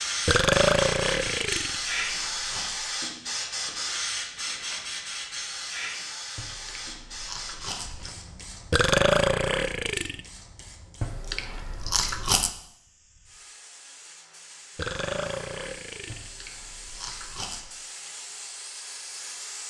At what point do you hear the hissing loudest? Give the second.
2 s.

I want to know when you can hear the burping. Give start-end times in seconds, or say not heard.
0.2-1.8, 8.7-10.2, 14.8-16.3.